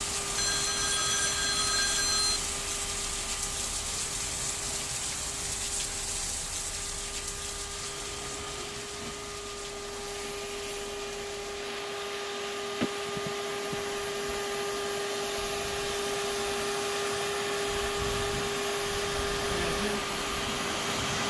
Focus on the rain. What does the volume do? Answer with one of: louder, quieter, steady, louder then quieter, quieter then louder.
quieter then louder.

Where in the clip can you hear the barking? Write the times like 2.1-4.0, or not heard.
not heard.